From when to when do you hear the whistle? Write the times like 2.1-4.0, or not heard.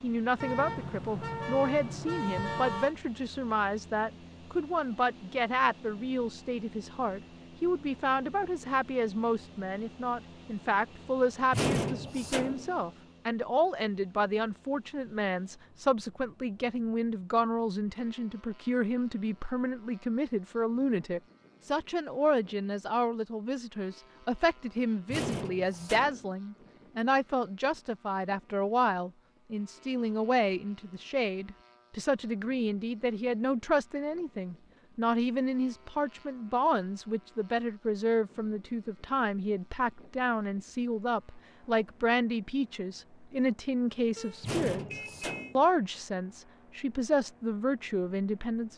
not heard.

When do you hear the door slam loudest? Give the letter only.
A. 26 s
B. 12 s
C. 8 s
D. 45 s
B.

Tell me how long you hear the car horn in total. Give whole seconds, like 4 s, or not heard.
4 s.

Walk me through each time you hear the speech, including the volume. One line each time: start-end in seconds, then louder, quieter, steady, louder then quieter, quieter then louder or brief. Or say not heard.
0.0-48.7 steady.